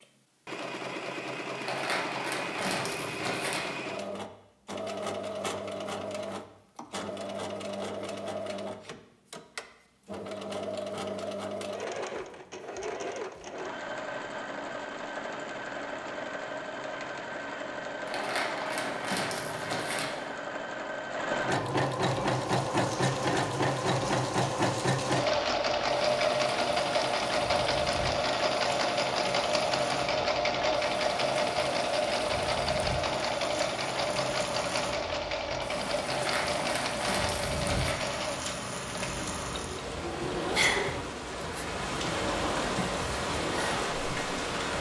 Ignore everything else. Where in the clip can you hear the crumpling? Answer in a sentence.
You can hear the crumpling from 1.6 to 3.6 s, from 18.1 to 20.1 s and from 36.0 to 38.0 s.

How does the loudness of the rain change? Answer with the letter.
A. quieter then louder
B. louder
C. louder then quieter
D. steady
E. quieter
B.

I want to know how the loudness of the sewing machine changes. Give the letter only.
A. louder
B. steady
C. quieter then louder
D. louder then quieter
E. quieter
D.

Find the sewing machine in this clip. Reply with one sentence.
The sewing machine can be heard from 0.0 to 44.7 s.